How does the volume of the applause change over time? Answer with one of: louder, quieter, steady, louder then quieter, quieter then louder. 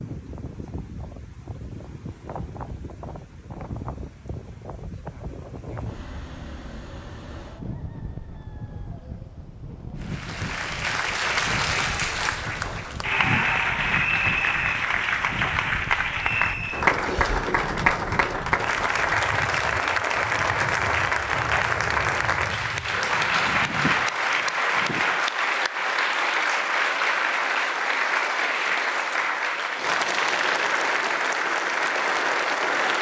steady.